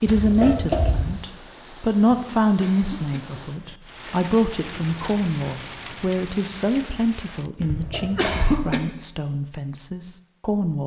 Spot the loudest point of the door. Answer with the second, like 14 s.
1 s.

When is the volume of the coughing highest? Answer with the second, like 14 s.
8 s.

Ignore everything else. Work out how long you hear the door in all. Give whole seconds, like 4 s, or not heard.
2 s.